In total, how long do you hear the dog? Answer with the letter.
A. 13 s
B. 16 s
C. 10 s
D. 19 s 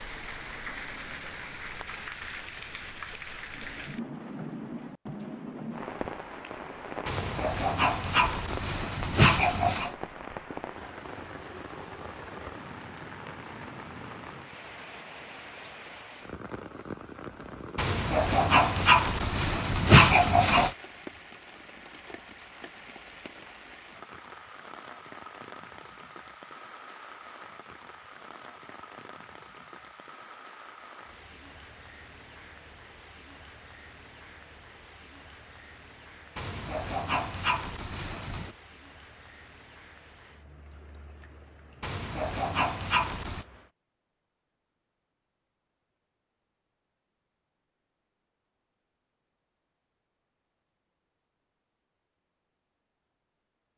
C.